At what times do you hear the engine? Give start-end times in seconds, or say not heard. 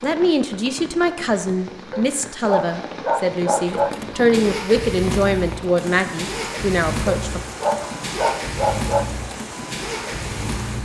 3.6-10.8.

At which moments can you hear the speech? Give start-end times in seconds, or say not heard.
0.0-7.4.